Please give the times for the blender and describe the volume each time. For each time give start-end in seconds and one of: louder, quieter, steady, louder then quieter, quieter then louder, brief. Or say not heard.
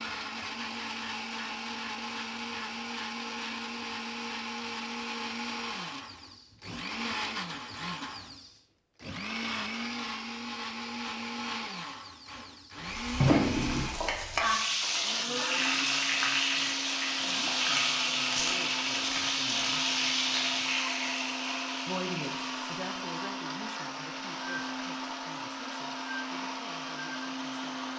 0.0-27.9 steady.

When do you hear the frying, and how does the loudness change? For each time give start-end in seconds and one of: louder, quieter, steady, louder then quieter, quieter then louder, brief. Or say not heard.
12.8-27.9 quieter.